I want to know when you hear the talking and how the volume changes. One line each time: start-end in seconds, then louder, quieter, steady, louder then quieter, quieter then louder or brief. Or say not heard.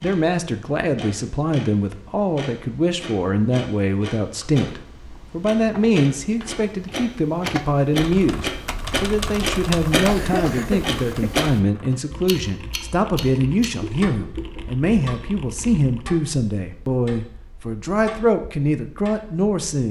0.0-19.8 steady.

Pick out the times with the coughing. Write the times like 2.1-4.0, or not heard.
10.1-11.4.